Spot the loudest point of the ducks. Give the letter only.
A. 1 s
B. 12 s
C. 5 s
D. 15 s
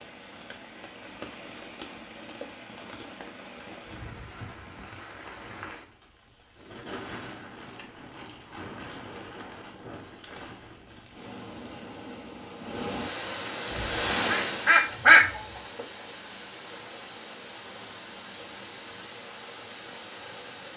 D.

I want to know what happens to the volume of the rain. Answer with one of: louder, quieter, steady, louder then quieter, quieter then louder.
louder then quieter.